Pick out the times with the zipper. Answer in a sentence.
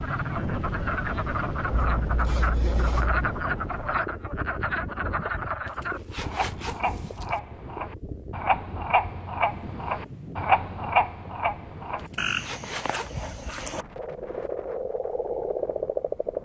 You can hear the zipper from 1.7 to 3.2 s, from 5.7 to 7.3 s and from 12.1 to 13.6 s.